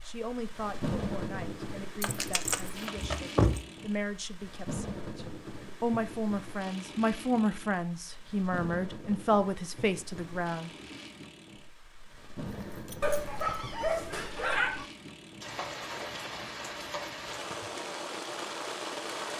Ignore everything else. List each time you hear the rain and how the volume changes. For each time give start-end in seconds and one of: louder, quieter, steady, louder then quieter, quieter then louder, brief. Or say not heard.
0.0-19.3 quieter then louder.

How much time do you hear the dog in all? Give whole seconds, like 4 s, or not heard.
2 s.